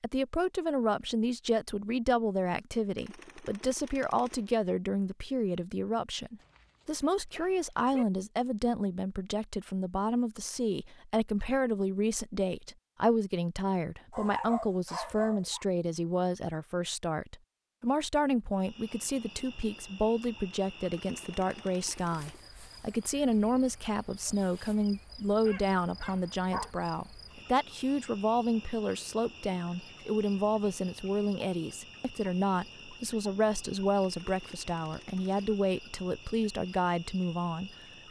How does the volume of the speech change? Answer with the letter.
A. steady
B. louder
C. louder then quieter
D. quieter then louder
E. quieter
A.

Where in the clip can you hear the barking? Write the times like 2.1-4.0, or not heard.
6.3-8.1, 14.1-15.7, 25.4-26.7.